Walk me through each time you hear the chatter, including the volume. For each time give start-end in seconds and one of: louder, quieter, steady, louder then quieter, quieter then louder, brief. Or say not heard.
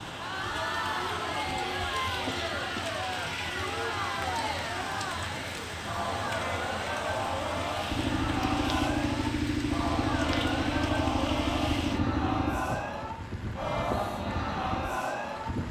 0.0-15.6 steady.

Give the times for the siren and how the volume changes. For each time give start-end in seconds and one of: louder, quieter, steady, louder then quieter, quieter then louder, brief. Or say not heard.
not heard.